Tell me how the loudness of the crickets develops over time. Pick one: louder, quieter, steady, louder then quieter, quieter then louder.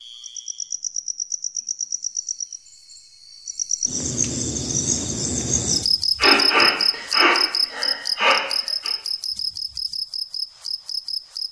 louder then quieter.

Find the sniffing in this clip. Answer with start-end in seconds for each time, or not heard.
6.2-8.9.